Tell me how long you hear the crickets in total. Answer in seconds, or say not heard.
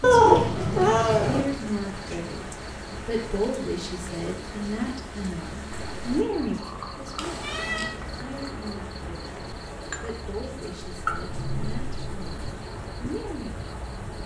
14 s.